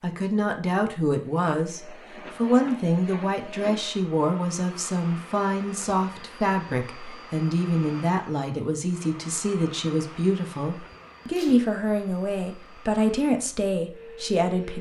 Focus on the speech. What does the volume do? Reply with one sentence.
The volume of the speech stays about the same.